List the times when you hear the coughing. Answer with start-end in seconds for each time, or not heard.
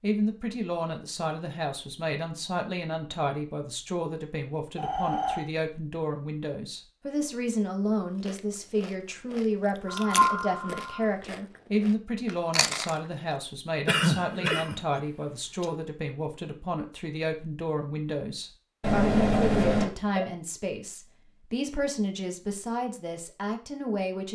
13.8-15.7.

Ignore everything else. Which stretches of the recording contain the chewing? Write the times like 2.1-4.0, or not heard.
8.2-13.3.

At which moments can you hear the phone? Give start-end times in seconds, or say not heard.
4.8-5.5, 9.8-11.1, 18.8-20.2.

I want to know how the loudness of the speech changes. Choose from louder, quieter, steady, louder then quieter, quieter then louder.
steady.